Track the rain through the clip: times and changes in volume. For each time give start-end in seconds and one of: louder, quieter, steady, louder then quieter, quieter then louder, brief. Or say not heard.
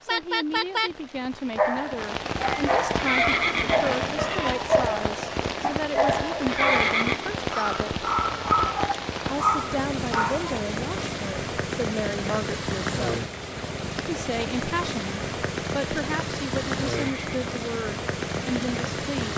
0.0-19.3 steady.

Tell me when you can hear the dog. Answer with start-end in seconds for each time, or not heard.
1.6-10.6.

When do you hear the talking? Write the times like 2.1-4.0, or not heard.
0.0-7.9, 9.2-13.2, 14.0-19.3.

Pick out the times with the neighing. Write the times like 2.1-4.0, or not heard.
3.0-4.5, 6.5-7.3, 16.9-17.4.